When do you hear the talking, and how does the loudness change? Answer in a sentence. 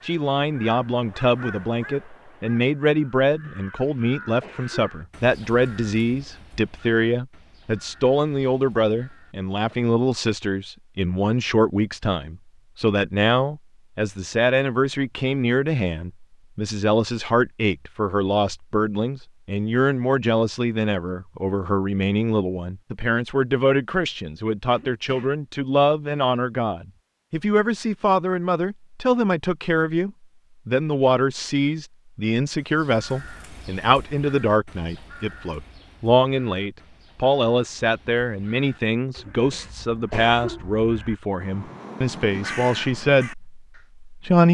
You can hear the talking from 0.0 to 44.4 s, at a steady volume.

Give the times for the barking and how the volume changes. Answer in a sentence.
You can't hear the barking here.